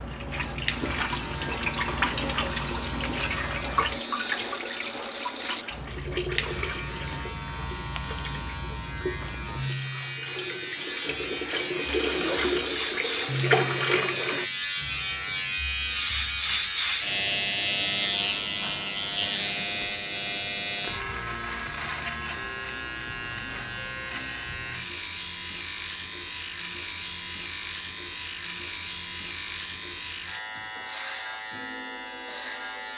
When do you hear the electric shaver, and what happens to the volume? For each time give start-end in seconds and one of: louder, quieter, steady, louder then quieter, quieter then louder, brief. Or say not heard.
0.0-32.9 louder then quieter.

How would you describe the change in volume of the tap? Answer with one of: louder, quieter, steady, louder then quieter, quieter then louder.
quieter then louder.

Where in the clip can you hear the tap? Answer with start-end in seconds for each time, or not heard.
0.0-14.4.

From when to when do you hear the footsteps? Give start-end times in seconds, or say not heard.
not heard.